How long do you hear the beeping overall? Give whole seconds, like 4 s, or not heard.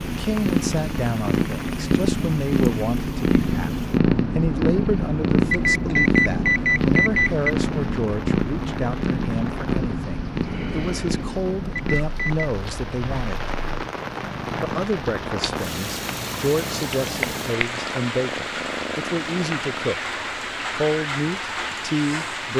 3 s.